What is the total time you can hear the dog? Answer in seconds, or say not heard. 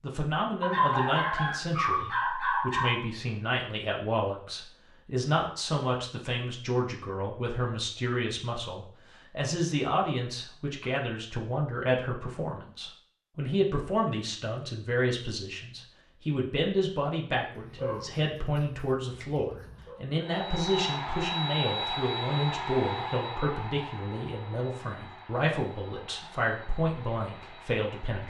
5 s.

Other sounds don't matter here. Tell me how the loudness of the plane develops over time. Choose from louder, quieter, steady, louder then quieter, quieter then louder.
quieter.